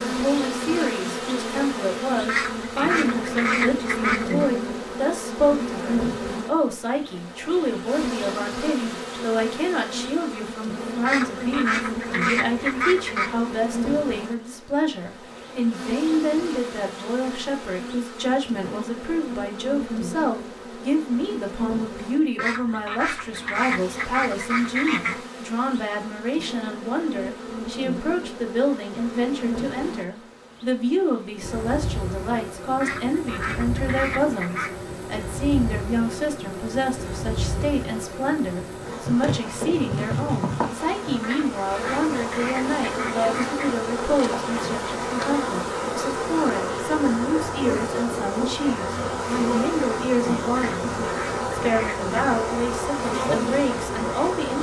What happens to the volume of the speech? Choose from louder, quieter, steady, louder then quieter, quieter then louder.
steady.